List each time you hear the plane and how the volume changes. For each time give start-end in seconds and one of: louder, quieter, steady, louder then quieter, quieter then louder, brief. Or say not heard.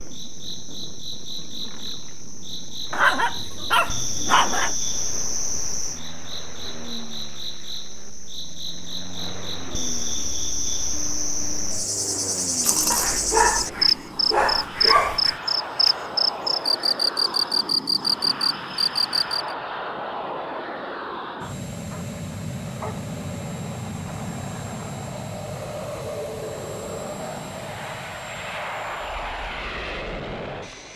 0.0-30.9 louder.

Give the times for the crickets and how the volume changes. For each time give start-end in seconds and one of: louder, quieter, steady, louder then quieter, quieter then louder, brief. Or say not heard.
0.0-19.6 louder.